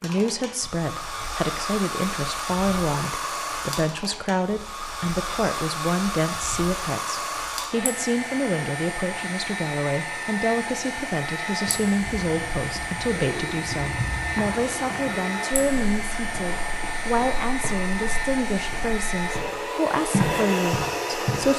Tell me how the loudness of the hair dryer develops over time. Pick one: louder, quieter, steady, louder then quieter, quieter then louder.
steady.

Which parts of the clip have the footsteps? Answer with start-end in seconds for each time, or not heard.
11.7-19.5, 20.1-21.5.